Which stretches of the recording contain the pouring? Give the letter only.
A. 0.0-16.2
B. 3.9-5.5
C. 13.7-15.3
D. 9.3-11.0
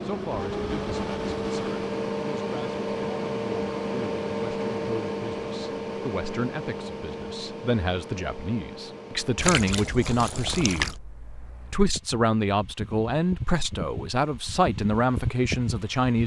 D.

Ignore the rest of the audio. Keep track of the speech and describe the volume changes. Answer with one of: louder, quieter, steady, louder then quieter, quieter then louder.
louder.